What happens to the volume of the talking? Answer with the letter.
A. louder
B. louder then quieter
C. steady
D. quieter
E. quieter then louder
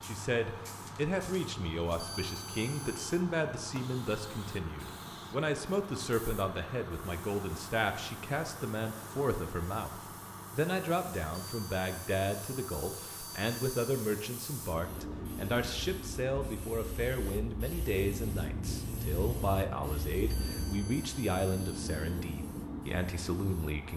C.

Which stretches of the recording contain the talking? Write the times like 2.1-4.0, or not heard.
0.0-23.9.